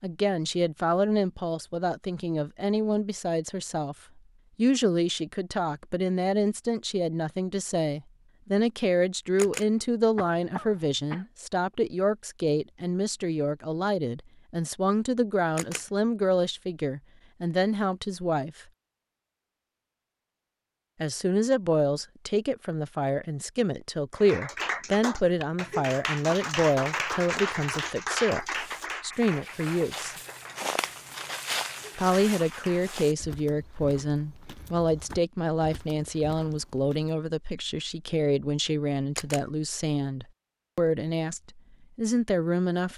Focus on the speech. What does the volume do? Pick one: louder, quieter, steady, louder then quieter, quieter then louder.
steady.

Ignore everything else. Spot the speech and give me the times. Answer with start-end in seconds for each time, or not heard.
0.0-4.0, 4.5-18.6, 21.0-30.1, 31.9-42.9.